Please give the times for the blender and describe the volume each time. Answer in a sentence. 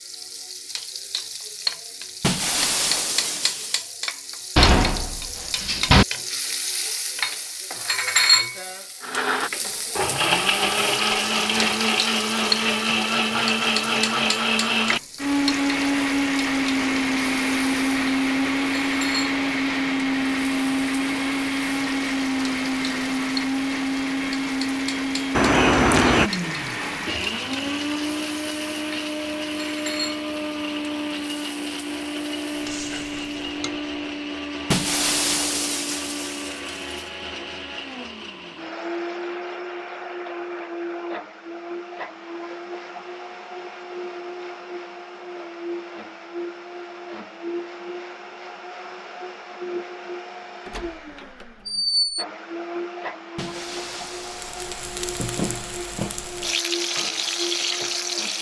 You can hear the blender from 9.0 to 58.3 s, getting quieter.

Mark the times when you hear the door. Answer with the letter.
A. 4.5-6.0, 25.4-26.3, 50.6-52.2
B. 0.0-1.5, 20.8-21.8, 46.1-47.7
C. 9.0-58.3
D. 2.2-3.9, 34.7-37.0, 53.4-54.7
A.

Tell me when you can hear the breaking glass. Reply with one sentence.
The breaking glass can be heard from 2.2 to 3.9 s, from 34.7 to 37.0 s and from 53.4 to 54.7 s.